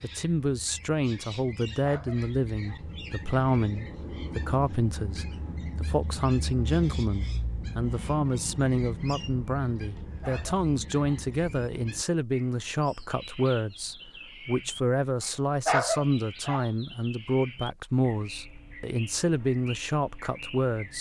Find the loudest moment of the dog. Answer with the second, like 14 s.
16 s.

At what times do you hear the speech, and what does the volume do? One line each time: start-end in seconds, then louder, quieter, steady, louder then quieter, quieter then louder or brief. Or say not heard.
0.0-20.9 steady.